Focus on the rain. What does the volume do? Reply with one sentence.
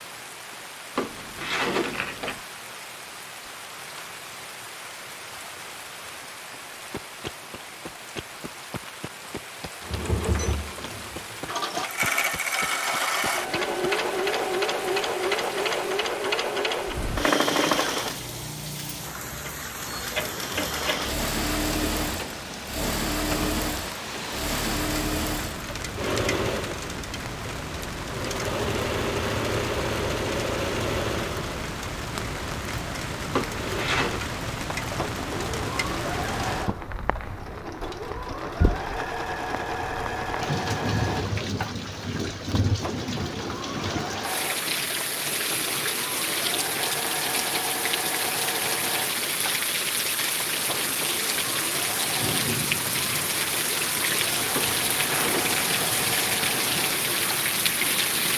The loudness of the rain goes up.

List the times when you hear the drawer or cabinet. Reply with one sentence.
The drawer or cabinet can be heard from 0.9 to 2.4 s, from 33.3 to 34.2 s and from 54.5 to 55.8 s.